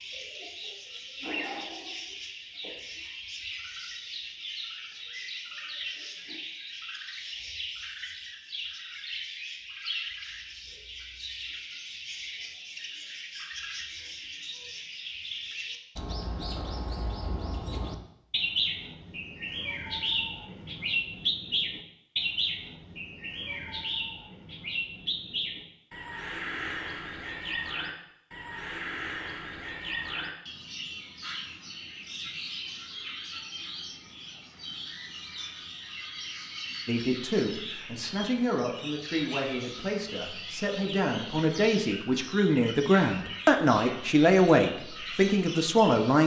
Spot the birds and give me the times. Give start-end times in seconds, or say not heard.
0.0-46.2.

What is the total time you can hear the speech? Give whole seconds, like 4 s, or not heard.
9 s.